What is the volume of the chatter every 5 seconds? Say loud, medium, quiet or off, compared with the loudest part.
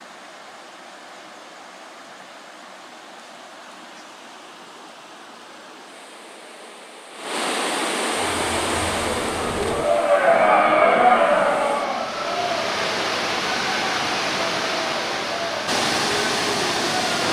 off, medium, loud, medium.